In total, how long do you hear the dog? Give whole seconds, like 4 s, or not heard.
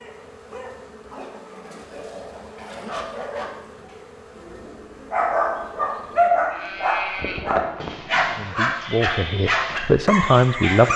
11 s.